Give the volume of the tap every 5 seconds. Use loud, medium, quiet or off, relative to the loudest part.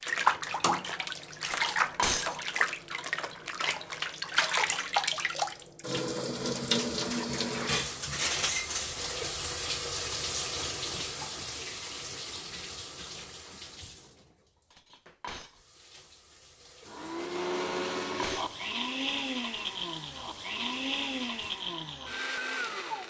loud, loud, medium, quiet, quiet.